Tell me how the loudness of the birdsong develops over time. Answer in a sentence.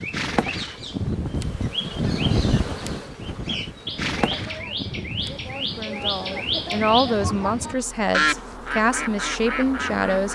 The volume of the birdsong goes up.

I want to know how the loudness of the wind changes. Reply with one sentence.
The volume of the wind goes up, then down.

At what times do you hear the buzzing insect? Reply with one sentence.
The buzzing insect can be heard from 0.0 to 10.3 s.